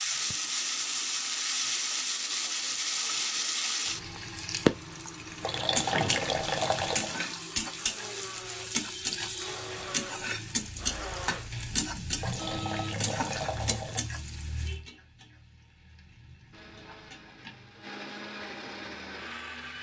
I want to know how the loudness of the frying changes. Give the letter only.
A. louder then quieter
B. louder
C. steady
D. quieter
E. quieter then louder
D.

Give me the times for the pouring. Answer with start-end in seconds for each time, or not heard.
5.4-7.2, 12.2-14.0.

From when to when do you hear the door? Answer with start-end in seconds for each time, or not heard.
5.8-6.5.